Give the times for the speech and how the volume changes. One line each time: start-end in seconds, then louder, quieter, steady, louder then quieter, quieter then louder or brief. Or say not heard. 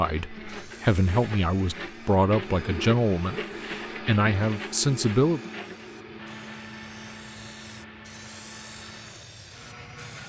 0.0-5.4 quieter then louder.